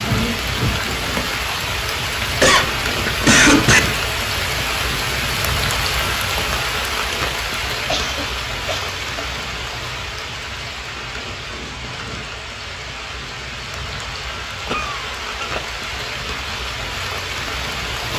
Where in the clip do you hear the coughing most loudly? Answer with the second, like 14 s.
3 s.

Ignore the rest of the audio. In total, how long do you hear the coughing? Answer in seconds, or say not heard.
4 s.